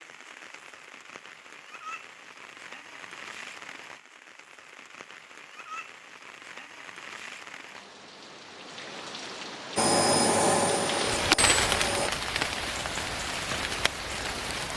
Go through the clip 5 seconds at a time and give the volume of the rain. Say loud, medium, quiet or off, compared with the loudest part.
quiet, quiet, loud.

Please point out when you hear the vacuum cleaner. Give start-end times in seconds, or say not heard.
9.8-12.1.